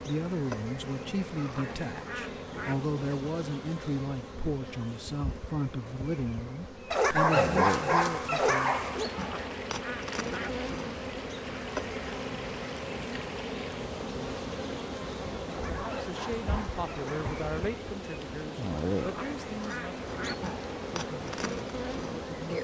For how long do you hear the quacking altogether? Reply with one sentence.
You can hear the quacking for 4 seconds altogether.